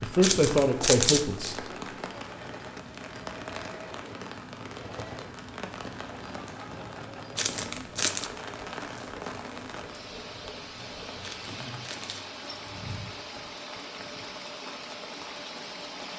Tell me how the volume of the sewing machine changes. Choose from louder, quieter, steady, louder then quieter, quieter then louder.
steady.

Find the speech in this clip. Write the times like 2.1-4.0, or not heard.
0.0-1.6.